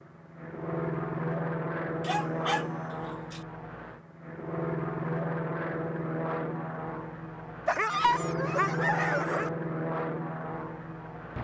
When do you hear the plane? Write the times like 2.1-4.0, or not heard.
0.0-11.4.